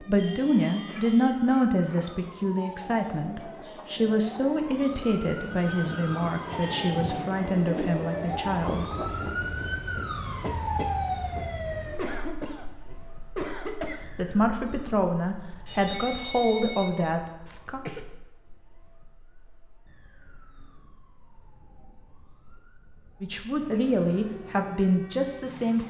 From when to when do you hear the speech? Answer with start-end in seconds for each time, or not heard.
0.0-9.3, 14.1-17.8, 23.2-25.8.